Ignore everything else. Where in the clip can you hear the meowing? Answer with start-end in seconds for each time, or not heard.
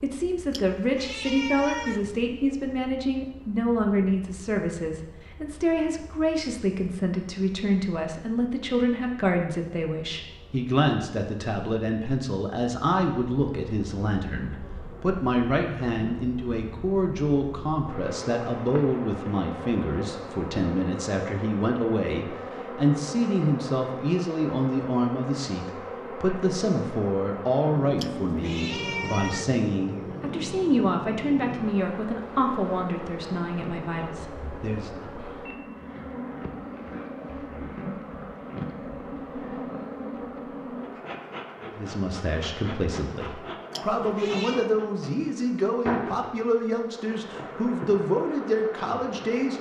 0.5-2.2, 27.9-29.6, 43.7-44.7.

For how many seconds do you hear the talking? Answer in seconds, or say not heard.
43 s.